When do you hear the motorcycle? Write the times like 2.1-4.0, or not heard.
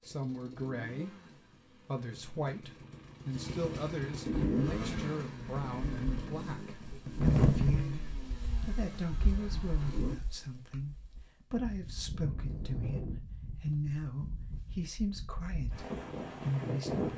0.0-10.2.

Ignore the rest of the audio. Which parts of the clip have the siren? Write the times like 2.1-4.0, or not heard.
not heard.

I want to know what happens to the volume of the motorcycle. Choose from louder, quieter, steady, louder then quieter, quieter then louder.
louder then quieter.